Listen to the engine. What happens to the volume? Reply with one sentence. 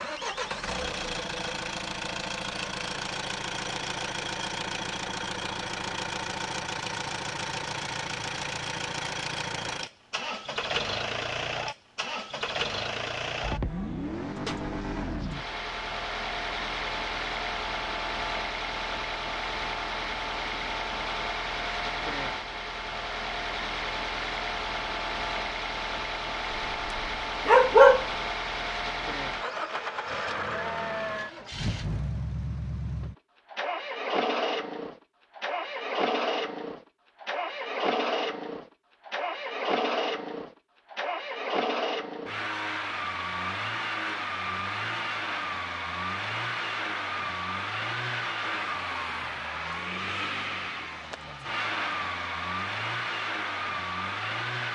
The volume of the engine stays about the same.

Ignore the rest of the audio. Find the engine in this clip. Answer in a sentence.
You can hear the engine from 0.0 to 54.7 s.